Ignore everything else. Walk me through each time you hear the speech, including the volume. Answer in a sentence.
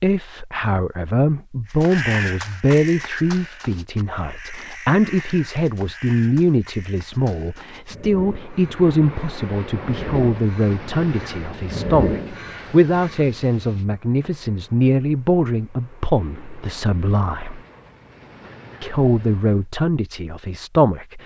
The speech can be heard from 0.0 to 17.6 s, at a steady volume; and briefly from 18.8 to 21.2 s.